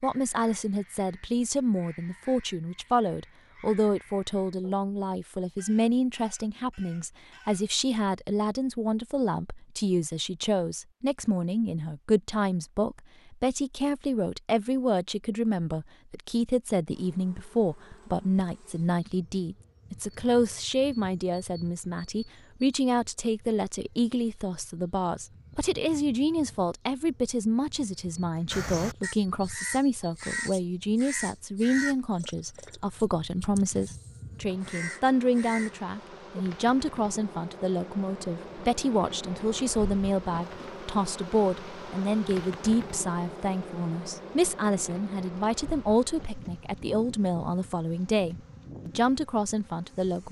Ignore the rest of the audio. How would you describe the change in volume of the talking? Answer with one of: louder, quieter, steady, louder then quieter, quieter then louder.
steady.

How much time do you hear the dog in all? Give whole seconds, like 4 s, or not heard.
not heard.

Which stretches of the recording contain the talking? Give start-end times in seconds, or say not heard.
0.0-50.2.